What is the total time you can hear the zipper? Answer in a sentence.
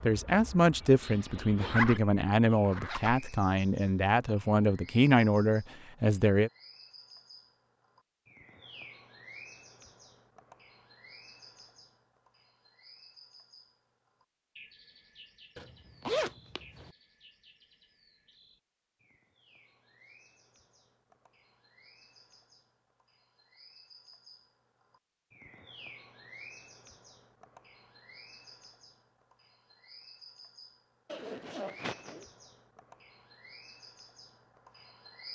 You can hear the zipper for 4 seconds altogether.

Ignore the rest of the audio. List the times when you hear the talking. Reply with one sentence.
You can hear the talking from 0.1 to 6.5 s.